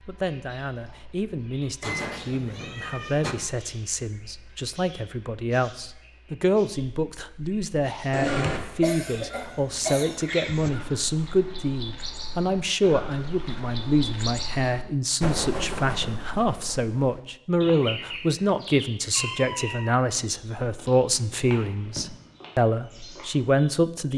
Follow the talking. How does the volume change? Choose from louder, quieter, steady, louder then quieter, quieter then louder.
louder.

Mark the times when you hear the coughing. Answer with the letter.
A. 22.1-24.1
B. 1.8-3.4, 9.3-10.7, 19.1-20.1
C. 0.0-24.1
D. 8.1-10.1
D.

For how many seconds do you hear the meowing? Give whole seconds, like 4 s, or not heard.
4 s.